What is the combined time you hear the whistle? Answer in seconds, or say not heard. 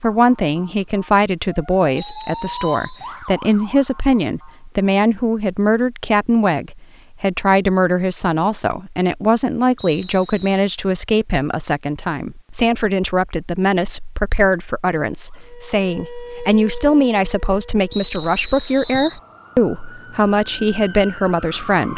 3 s.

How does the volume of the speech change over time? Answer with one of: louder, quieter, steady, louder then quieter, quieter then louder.
steady.